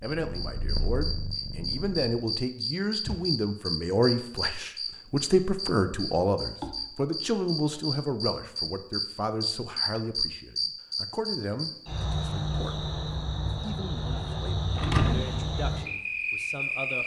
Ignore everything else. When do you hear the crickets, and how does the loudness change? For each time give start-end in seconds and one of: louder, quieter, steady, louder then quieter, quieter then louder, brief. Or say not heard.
0.0-17.0 steady.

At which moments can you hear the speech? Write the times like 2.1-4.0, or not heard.
0.0-17.0.